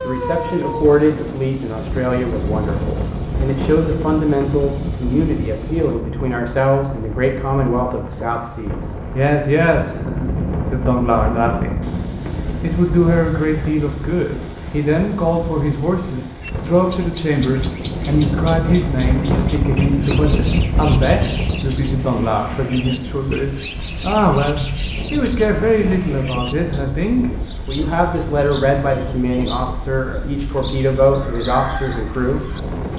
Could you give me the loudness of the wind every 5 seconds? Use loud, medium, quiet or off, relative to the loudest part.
loud, medium, loud, loud, loud, medium, medium.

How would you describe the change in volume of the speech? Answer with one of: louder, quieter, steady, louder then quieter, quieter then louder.
steady.